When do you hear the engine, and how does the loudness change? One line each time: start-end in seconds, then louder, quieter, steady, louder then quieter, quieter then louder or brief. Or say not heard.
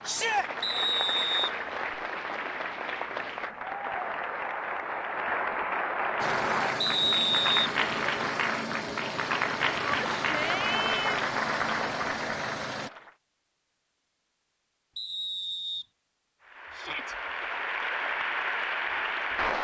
6.2-12.9 steady.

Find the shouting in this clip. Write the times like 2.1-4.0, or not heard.
0.1-0.5, 9.8-11.3, 16.7-17.1.